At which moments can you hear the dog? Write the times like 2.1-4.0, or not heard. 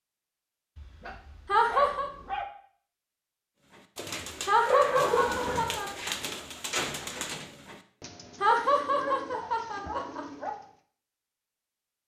0.8-2.5, 4.7-5.8, 8.5-10.5.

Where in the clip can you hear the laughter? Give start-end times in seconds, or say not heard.
1.4-2.1, 4.5-5.9, 8.4-10.2.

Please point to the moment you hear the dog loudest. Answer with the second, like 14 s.
5 s.